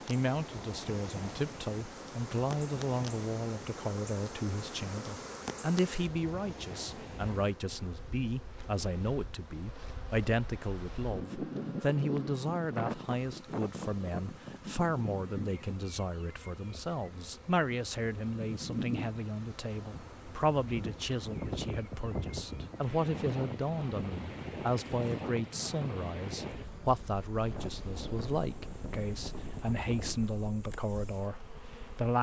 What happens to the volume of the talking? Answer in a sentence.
The volume of the talking stays about the same.